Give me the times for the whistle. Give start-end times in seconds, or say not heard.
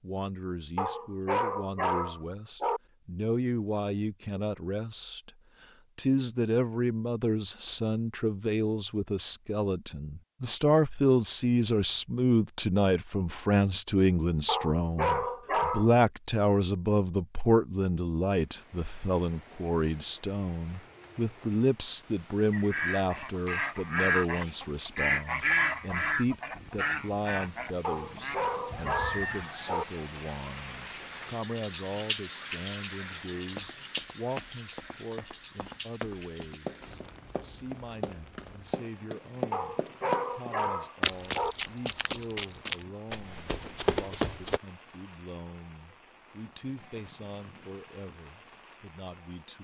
not heard.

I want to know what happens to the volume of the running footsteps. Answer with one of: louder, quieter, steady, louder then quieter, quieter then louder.
louder.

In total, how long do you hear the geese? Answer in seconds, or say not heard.
7 s.